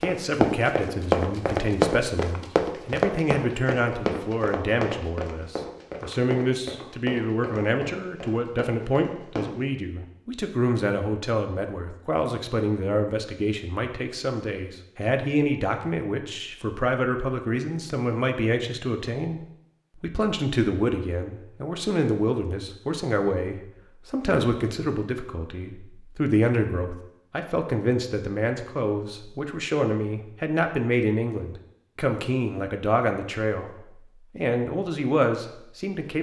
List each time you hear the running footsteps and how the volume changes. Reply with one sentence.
The running footsteps can be heard from 0.0 to 9.5 s, getting quieter.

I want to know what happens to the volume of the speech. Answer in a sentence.
The volume of the speech stays about the same.